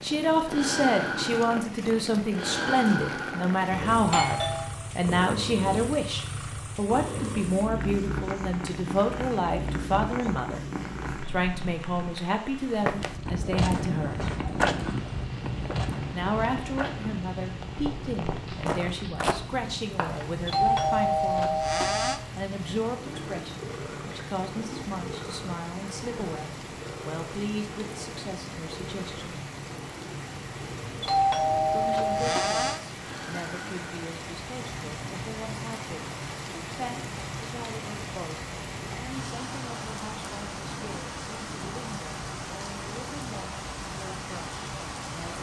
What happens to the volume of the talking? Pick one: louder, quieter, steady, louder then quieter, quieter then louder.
quieter.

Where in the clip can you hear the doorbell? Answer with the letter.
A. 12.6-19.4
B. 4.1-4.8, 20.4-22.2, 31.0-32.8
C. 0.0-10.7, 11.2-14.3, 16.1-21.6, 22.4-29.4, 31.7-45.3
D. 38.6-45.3
B.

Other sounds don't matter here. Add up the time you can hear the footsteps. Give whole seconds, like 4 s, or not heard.
7 s.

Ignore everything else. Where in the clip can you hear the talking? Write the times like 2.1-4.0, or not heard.
0.0-10.7, 11.2-14.3, 16.1-21.6, 22.4-29.4, 31.7-45.3.